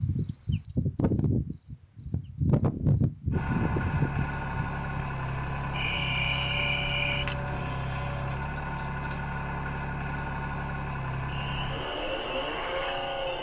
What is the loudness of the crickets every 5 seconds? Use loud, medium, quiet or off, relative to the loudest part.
loud, loud, medium.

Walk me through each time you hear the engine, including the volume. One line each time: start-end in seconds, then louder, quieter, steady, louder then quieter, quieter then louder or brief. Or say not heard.
3.3-13.3 steady.